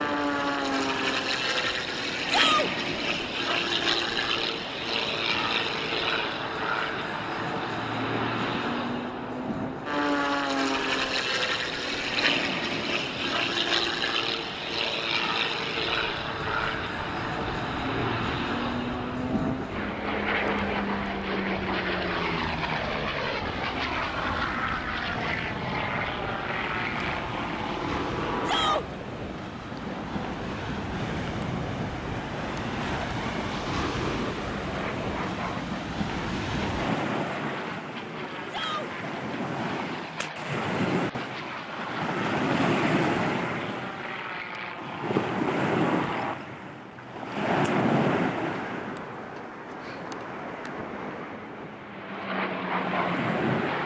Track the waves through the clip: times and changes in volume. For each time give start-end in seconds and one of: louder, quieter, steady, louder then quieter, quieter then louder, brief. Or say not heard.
0.0-53.8 louder.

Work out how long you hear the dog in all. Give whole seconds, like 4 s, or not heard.
not heard.